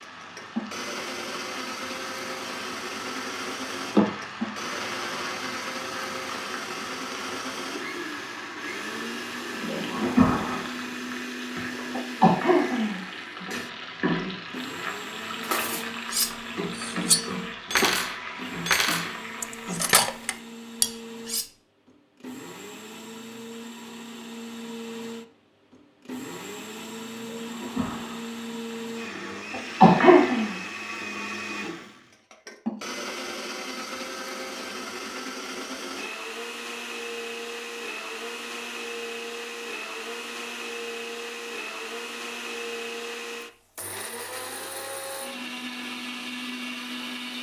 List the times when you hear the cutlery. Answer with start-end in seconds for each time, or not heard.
15.4-21.4.